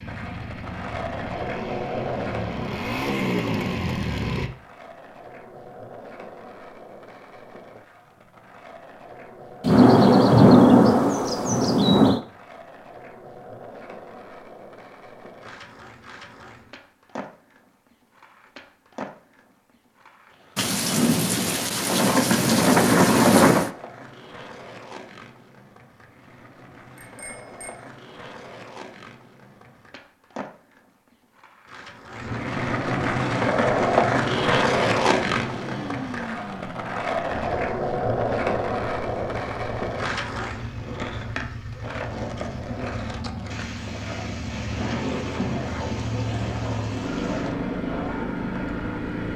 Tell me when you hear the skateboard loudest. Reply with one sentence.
The volume of the skateboard peaks at 34 seconds.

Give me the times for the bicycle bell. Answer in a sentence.
You can hear the bicycle bell from 26.9 to 27.8 s.